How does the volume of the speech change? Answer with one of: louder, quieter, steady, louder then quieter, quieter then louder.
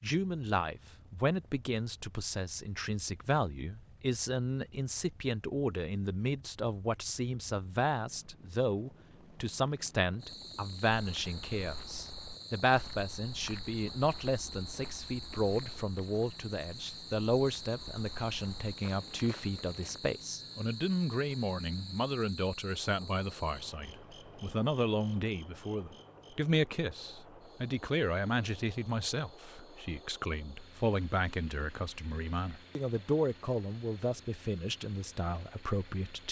steady.